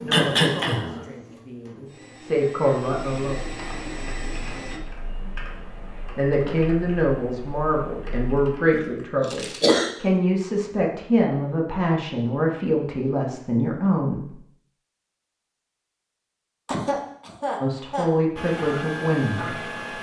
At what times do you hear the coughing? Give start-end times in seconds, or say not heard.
0.1-1.0, 8.7-9.9, 16.6-18.1.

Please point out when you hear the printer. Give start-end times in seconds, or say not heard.
0.0-4.8, 18.4-19.9.